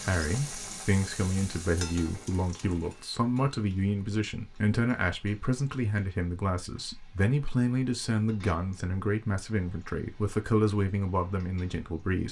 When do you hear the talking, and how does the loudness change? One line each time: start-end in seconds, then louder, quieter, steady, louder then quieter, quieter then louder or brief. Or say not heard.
0.0-12.2 steady.